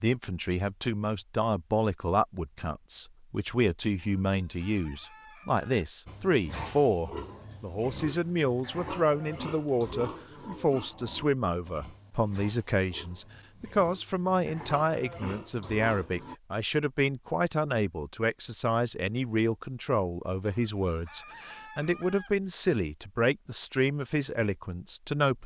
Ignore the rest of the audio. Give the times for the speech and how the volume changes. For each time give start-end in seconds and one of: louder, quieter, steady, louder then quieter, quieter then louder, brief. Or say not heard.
0.0-25.4 steady.